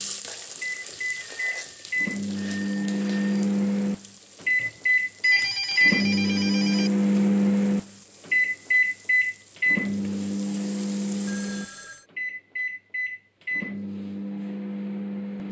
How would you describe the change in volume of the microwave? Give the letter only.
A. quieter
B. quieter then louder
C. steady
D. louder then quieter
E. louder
D.